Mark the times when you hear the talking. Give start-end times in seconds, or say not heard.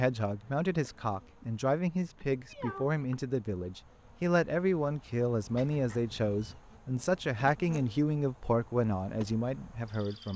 0.0-10.3.